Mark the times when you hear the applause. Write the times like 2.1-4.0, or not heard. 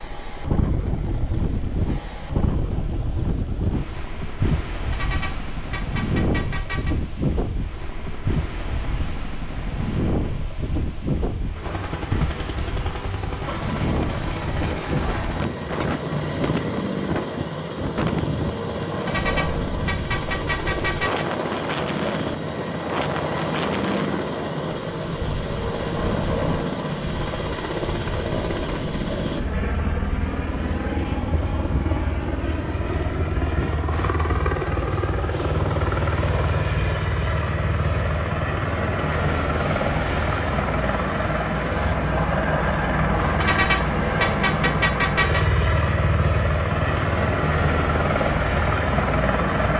not heard.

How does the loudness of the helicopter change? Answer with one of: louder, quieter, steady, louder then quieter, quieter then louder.
louder.